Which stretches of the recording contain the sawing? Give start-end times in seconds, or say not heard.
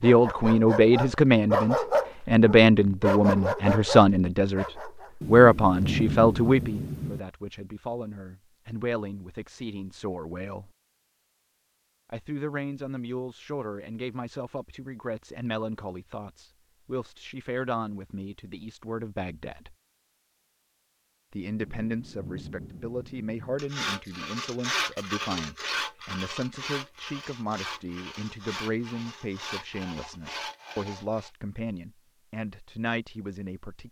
23.6-31.3.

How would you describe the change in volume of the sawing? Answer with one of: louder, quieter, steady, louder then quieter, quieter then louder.
quieter.